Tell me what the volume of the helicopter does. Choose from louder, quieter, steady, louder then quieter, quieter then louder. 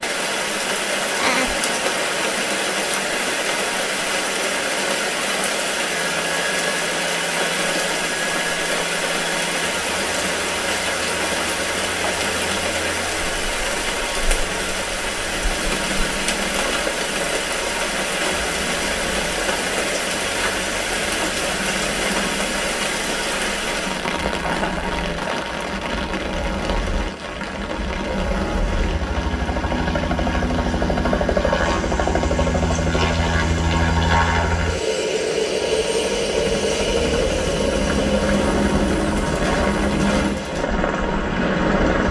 louder.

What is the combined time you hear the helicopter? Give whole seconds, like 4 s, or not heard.
42 s.